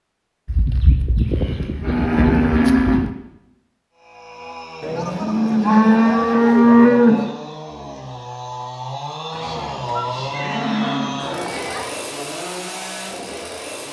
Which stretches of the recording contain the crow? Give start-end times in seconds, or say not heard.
not heard.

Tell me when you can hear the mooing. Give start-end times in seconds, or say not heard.
0.5-3.1, 4.8-7.3, 9.3-11.9.